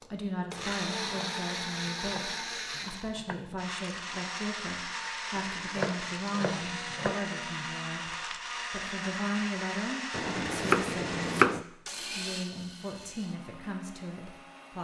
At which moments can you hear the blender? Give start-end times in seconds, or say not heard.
0.0-14.7.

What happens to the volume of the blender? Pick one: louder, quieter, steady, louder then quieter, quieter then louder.
quieter.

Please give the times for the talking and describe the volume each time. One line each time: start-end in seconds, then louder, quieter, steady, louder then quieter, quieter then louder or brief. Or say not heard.
0.1-8.1 steady
8.7-14.7 quieter.